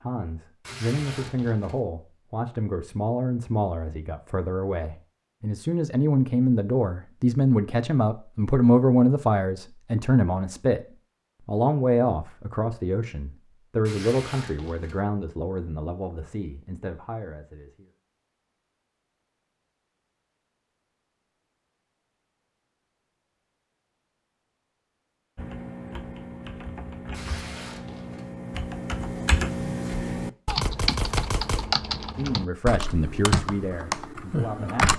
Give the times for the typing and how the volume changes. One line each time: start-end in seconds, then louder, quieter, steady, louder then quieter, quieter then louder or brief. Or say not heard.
25.4-34.9 louder.